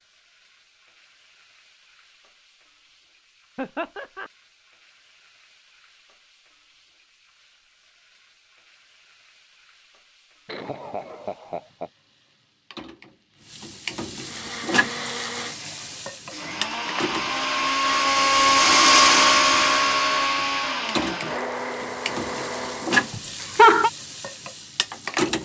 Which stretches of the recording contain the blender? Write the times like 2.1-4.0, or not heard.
14.2-23.2.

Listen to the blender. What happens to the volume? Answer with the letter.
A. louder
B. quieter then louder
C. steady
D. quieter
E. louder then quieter
E.